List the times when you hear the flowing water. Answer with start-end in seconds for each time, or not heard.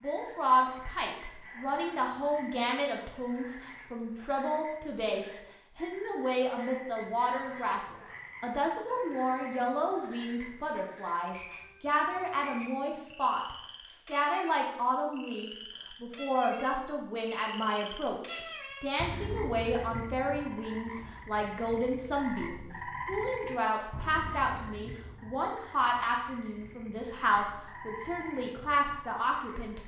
not heard.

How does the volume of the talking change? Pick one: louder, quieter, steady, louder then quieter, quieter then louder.
steady.